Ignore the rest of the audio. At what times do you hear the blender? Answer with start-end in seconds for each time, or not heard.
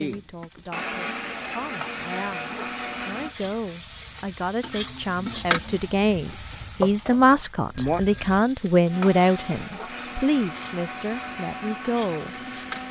0.0-3.4, 8.8-12.8.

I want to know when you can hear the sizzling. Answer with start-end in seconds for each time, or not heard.
0.0-12.8.